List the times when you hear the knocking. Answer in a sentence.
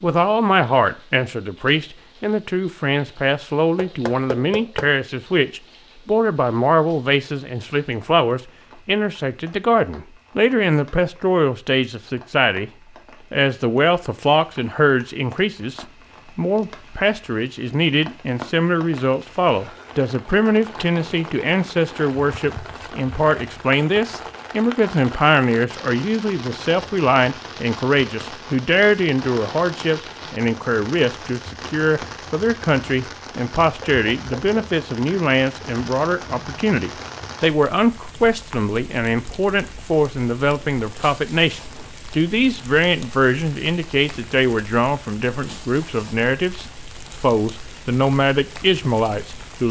You can hear the knocking from 3.8 to 4.9 s and from 33.8 to 34.6 s.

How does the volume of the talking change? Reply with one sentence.
The loudness of the talking stays about the same.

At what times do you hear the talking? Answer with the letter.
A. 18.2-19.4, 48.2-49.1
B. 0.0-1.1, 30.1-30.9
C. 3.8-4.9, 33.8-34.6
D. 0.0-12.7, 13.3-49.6
D.